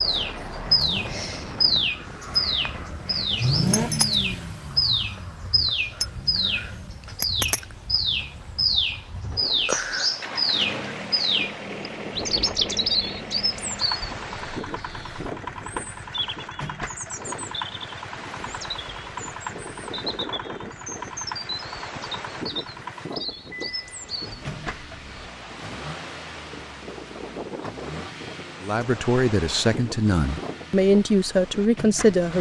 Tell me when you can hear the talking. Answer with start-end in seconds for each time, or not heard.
28.6-32.3.